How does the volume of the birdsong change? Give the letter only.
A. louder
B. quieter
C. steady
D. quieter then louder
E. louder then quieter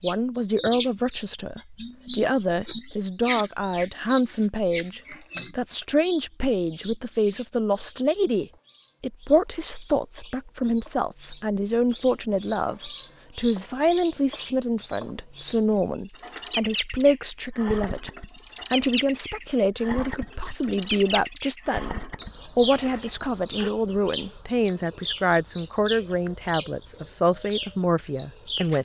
D.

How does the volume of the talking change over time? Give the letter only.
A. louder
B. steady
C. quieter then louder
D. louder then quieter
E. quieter
B.